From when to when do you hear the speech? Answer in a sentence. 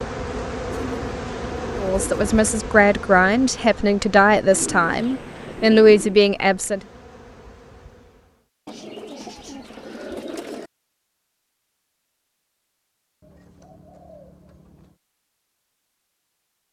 You can hear the speech from 1.8 to 6.8 s.